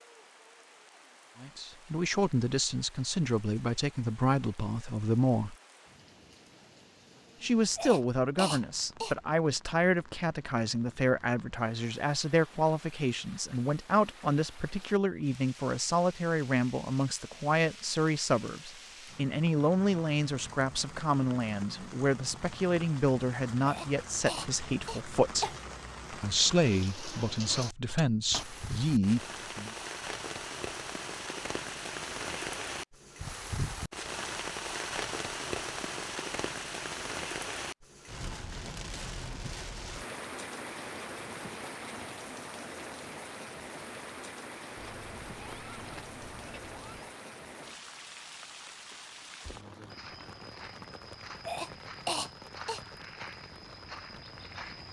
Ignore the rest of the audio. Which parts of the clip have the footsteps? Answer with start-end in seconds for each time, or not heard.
49.4-54.8.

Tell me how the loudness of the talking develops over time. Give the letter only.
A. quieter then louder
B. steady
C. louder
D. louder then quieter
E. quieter
B.